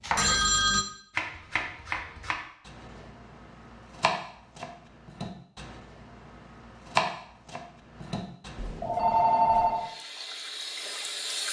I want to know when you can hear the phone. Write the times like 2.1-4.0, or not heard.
0.1-0.8, 8.6-9.9.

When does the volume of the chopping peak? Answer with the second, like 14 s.
7 s.